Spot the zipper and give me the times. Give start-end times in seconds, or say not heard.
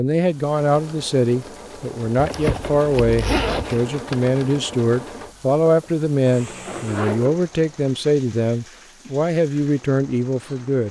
2.1-3.8, 5.6-7.5.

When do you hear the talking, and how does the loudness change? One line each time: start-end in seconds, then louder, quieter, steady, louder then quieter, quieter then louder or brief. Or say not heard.
0.0-10.8 steady.